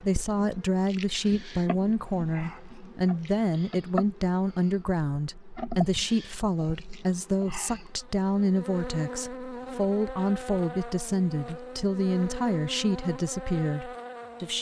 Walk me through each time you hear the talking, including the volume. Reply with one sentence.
The talking can be heard from 0.0 to 14.5 s, at a steady volume.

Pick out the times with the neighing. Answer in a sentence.
The neighing can't be heard in this clip.